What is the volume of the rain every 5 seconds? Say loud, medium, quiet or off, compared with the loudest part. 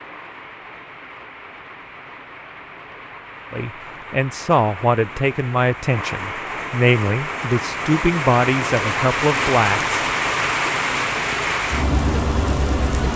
quiet, loud, loud.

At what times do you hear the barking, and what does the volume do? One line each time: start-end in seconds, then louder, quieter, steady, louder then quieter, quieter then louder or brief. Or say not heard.
not heard.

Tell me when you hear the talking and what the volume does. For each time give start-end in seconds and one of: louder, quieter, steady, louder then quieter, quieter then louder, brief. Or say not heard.
3.5-9.9 steady.